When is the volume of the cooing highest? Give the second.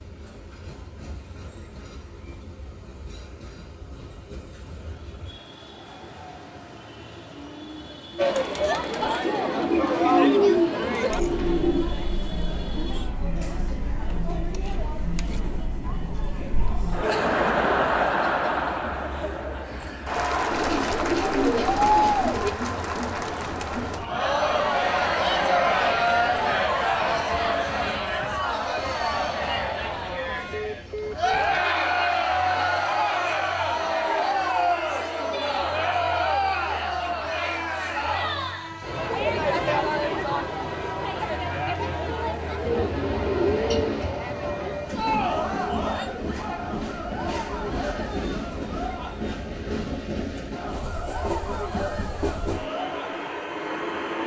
10 s.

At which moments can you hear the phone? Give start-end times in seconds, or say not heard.
30.5-31.5.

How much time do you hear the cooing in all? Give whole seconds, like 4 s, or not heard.
6 s.